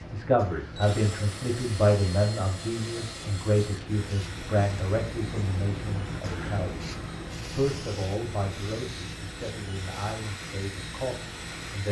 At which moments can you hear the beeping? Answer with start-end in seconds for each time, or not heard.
not heard.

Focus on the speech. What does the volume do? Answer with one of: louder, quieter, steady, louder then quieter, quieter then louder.
quieter.